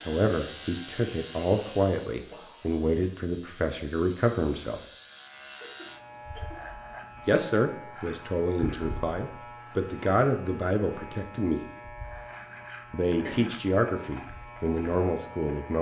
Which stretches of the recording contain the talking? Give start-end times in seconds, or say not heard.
0.0-4.8, 7.2-11.7, 12.9-15.7.